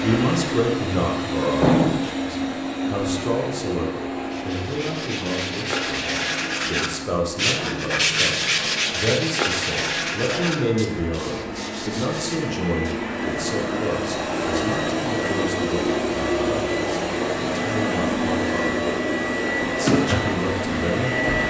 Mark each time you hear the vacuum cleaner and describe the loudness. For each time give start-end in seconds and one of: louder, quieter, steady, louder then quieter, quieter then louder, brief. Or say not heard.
0.0-21.4 quieter then louder.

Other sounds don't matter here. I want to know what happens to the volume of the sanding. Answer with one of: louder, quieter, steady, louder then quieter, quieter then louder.
louder then quieter.